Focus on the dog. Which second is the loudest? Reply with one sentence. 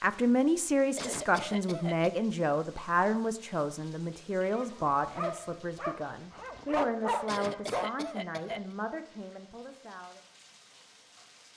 The volume of the dog peaks at 7 seconds.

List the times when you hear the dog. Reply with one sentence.
The dog can be heard from 4.5 to 8.0 s.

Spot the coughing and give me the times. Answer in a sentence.
The coughing can be heard from 0.9 to 2.2 s and from 7.2 to 8.8 s.